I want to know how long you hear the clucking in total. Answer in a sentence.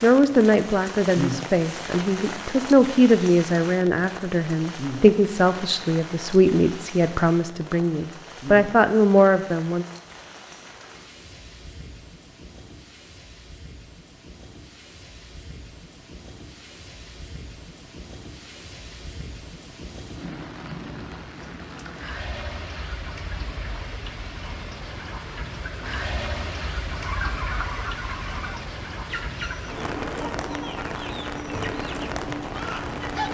The clucking can be heard for 6 seconds in total.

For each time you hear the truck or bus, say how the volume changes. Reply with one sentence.
You can't hear the truck or bus here.